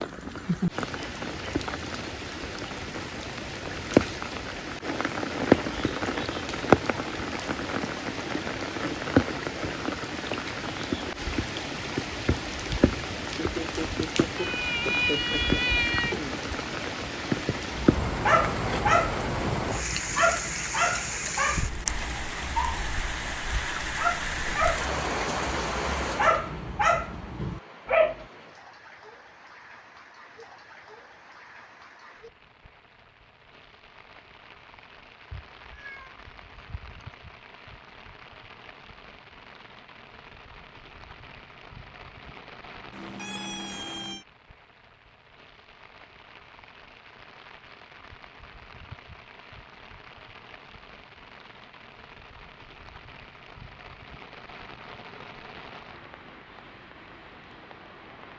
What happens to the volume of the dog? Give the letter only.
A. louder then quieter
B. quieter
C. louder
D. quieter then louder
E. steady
D.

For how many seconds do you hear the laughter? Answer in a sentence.
The laughter can be heard for 2 seconds in total.